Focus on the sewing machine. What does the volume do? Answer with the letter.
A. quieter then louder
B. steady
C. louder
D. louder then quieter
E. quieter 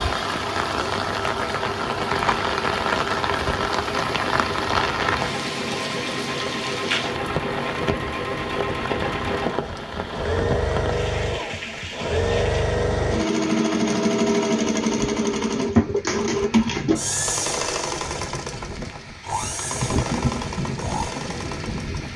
D.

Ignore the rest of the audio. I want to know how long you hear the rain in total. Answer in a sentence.
You can hear the rain for 22 seconds altogether.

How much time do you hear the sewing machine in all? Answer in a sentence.
You can hear the sewing machine for 22 seconds altogether.